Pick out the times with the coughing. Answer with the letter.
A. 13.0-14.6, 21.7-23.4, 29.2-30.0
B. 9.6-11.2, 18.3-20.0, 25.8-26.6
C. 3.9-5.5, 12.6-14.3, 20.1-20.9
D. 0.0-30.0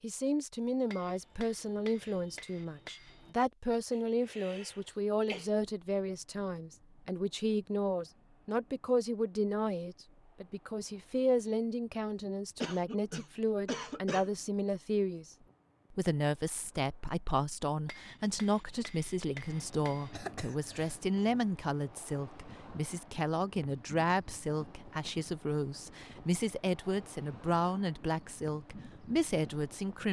C.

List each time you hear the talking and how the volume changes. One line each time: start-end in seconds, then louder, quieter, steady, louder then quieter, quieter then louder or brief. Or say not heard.
0.0-30.0 steady.